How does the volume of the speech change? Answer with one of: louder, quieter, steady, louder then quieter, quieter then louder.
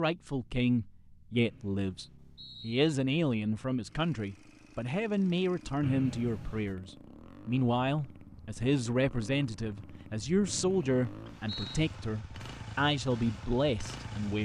steady.